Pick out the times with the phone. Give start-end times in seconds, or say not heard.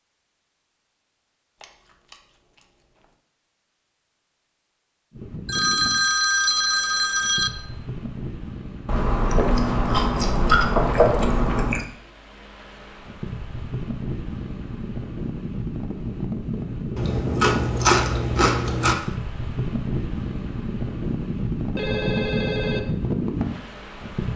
5.5-7.5, 21.8-22.8.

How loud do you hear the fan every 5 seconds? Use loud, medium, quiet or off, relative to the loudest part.
off, medium, medium, loud, loud.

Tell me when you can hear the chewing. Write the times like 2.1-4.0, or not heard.
1.6-3.0, 8.8-11.8, 16.9-18.9.